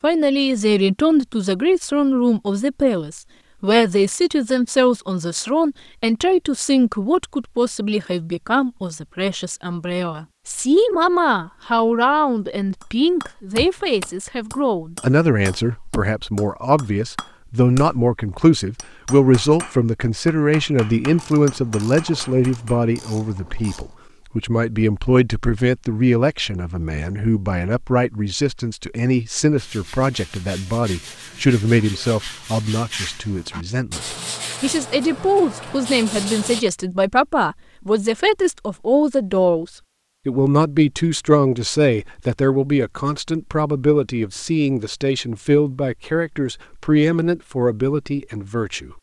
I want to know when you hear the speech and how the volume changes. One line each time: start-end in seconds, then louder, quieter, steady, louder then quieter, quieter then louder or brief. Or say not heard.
0.0-39.6 steady
40.2-48.9 steady.